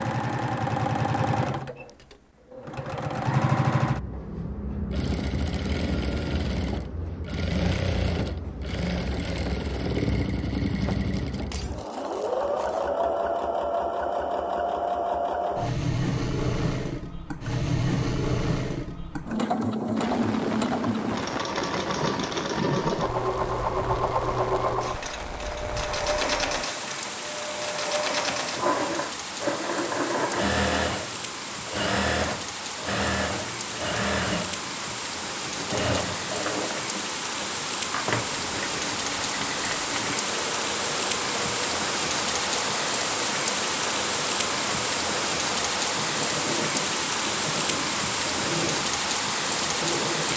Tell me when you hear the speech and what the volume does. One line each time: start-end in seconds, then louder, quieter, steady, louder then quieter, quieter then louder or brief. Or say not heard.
not heard.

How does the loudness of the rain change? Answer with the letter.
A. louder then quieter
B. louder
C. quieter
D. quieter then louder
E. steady
B.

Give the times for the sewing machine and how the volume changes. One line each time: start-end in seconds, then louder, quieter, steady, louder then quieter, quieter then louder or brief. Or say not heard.
0.0-50.3 quieter.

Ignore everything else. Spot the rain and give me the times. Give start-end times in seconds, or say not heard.
19.9-50.3.